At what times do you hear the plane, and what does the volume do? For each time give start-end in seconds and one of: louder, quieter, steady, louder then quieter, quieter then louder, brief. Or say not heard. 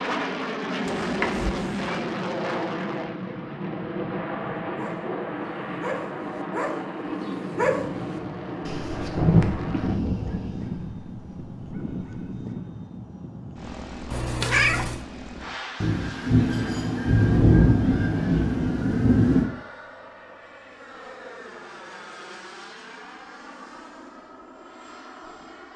0.0-25.7 quieter.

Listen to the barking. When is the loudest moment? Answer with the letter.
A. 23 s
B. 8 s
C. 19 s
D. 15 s
B.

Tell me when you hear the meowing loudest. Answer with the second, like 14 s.
15 s.